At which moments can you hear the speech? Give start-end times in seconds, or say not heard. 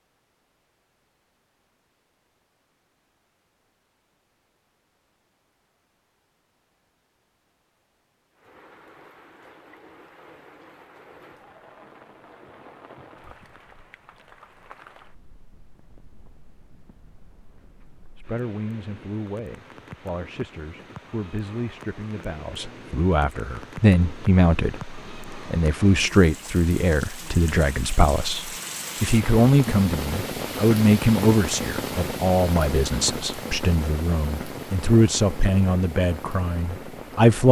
18.1-37.4.